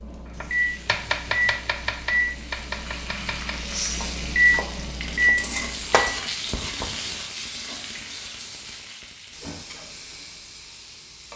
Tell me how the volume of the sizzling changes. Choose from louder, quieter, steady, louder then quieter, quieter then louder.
louder then quieter.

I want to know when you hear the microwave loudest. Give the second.
5 s.